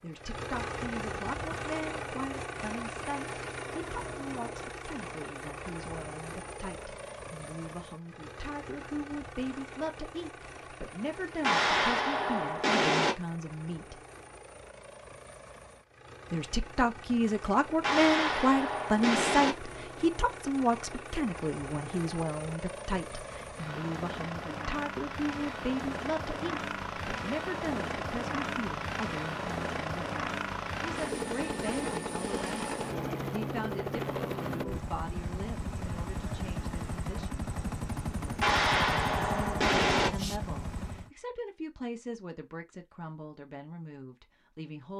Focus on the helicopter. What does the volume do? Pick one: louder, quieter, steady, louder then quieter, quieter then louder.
quieter then louder.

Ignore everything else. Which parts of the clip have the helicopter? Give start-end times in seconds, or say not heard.
0.0-41.1.